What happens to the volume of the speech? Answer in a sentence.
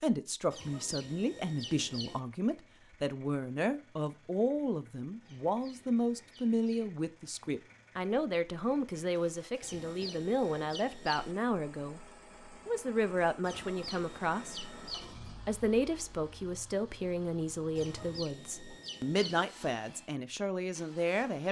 The volume of the speech stays about the same.